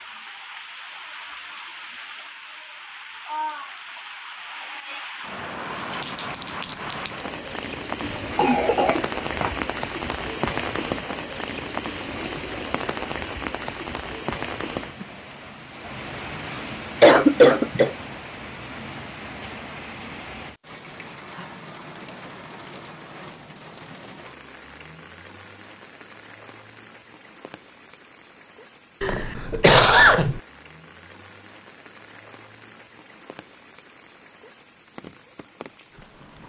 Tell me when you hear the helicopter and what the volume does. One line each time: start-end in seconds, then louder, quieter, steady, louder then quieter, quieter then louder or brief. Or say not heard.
not heard.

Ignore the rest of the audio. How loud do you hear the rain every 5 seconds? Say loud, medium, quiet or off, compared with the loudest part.
medium, loud, loud, medium, medium, quiet, quiet, quiet.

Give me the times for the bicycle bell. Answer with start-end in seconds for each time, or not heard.
not heard.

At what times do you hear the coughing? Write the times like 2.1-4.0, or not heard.
8.0-9.6, 16.5-17.9, 29.0-30.4.